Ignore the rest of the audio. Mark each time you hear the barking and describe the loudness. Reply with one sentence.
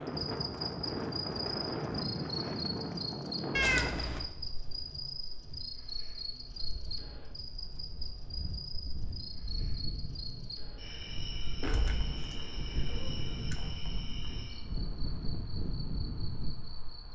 The barking can't be heard in this clip.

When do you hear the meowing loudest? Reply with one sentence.
The loudest moment of the meowing is at 4 seconds.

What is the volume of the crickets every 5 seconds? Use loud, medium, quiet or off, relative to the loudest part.
loud, loud, medium, medium.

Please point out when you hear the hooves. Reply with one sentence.
You can't hear the hooves here.